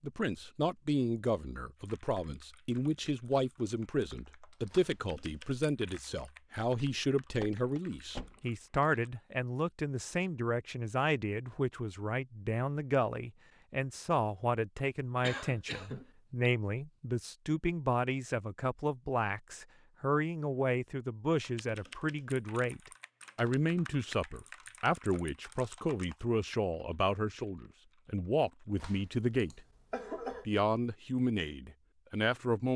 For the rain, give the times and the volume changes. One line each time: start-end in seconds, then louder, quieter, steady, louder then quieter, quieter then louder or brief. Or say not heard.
not heard.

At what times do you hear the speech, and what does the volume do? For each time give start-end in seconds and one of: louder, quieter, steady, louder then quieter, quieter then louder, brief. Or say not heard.
0.0-29.6 steady
30.4-32.7 brief.